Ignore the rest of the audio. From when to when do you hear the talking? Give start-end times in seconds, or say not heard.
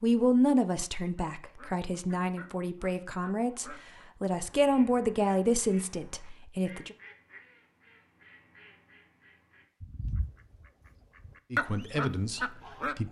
0.0-7.0, 11.5-13.0.